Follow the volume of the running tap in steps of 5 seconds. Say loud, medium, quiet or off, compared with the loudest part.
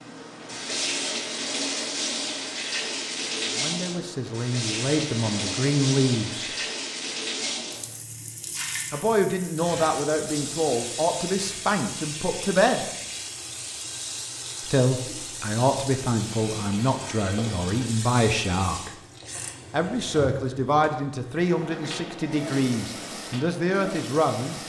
loud, loud, medium, medium, medium.